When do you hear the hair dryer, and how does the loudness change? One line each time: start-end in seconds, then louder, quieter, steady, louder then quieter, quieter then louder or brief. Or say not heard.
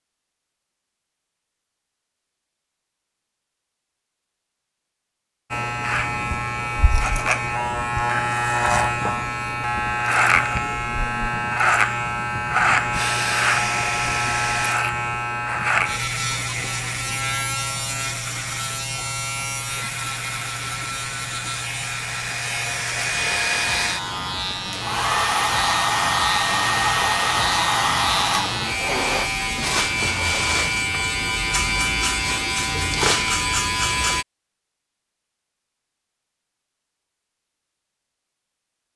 12.9-14.8 brief
19.6-29.3 louder.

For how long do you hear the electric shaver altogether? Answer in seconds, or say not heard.
29 s.